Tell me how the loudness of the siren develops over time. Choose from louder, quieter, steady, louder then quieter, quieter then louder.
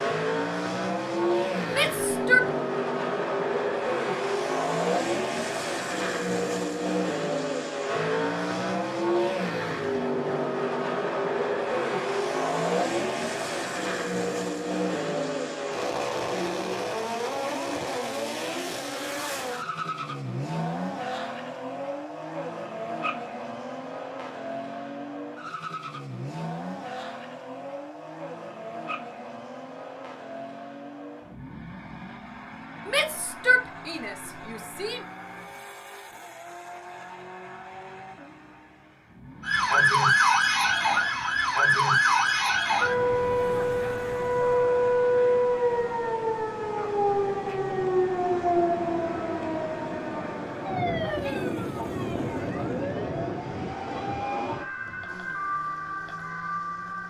quieter.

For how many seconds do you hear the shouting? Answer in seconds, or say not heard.
3 s.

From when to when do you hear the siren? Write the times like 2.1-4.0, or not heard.
39.4-57.0.